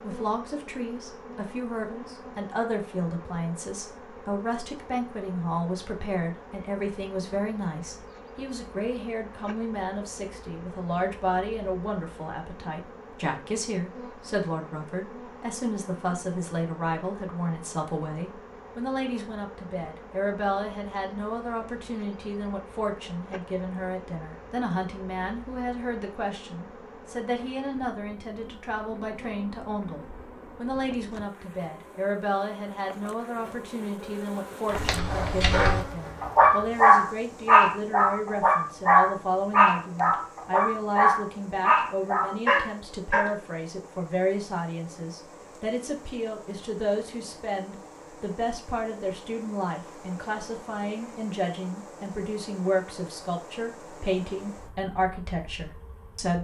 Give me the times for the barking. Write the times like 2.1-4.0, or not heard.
34.7-43.4.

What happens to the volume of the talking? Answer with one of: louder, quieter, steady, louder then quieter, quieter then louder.
steady.